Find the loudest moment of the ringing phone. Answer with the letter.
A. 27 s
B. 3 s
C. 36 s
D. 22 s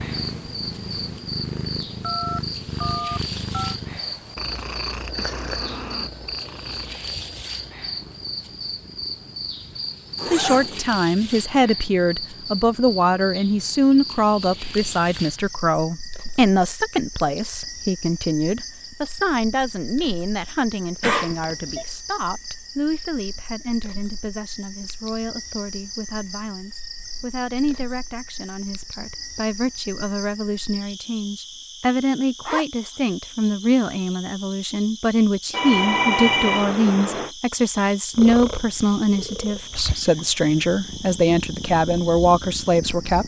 C.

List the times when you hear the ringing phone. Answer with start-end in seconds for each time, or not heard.
2.0-3.8, 21.0-21.9, 35.5-37.3.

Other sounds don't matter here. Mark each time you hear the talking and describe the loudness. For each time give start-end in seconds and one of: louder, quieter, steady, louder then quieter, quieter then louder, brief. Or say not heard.
10.3-43.2 quieter then louder.